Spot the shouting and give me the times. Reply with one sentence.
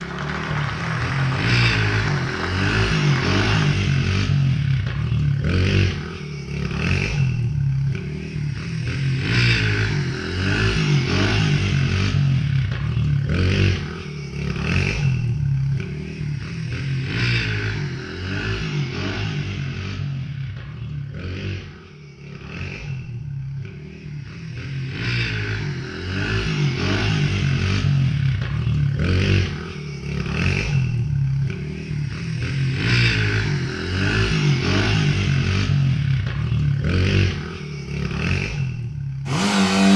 You can't hear the shouting here.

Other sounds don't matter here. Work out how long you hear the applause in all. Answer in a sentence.
You can hear the applause for 4 seconds altogether.